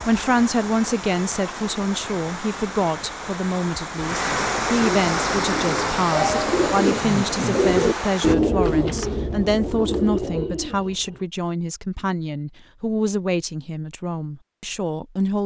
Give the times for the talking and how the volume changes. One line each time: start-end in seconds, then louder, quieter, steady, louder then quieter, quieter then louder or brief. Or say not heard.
0.0-15.4 steady.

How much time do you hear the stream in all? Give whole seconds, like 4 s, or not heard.
8 s.